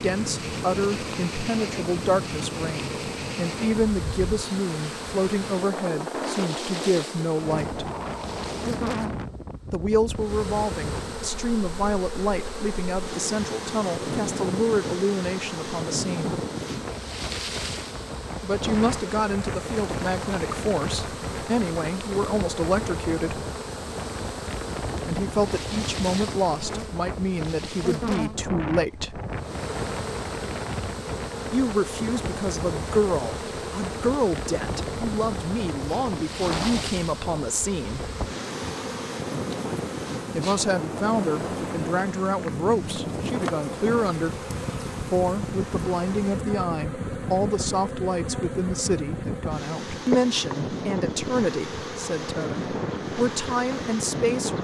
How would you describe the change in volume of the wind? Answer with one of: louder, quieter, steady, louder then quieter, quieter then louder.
steady.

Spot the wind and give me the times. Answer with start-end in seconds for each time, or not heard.
0.0-54.5.